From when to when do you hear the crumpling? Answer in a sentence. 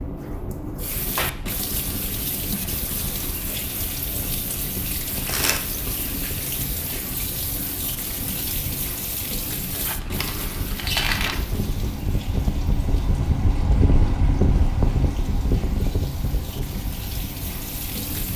You can hear the crumpling from 5.1 to 5.6 s and from 9.8 to 11.4 s.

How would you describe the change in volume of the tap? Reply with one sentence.
The volume of the tap goes down.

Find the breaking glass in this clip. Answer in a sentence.
The breaking glass can't be heard in this clip.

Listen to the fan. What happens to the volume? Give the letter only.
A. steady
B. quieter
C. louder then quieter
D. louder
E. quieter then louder
D.